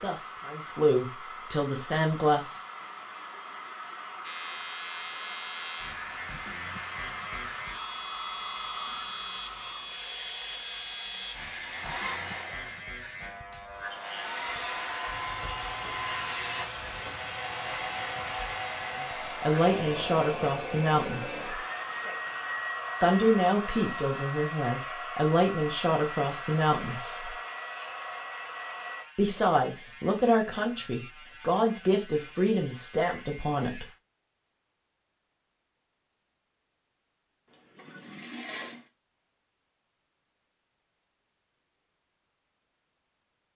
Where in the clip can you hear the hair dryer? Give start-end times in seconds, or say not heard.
0.0-29.1.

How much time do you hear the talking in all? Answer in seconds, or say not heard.
14 s.